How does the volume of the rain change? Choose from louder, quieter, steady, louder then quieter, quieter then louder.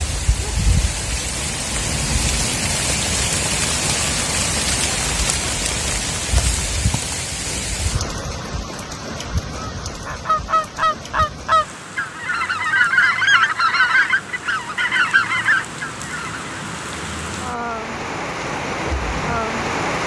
quieter then louder.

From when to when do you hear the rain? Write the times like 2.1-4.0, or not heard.
0.0-20.0.